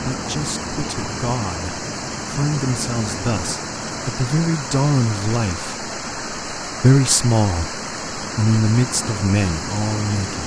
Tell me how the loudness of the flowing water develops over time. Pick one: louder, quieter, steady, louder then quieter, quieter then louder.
steady.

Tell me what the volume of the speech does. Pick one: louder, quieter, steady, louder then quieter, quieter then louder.
louder then quieter.